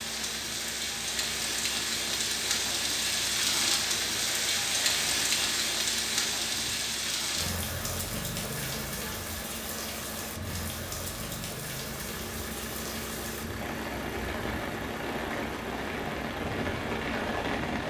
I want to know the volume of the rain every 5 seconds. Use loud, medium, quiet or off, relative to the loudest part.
loud, loud, medium, loud.